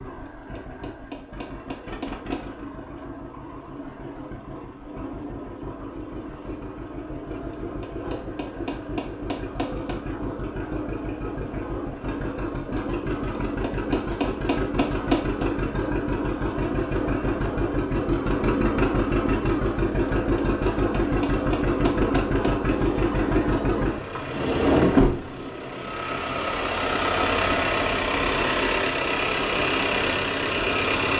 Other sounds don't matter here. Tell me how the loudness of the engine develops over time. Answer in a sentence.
The loudness of the engine goes up.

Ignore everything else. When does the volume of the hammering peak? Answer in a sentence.
The loudest moment of the hammering is at 15 seconds.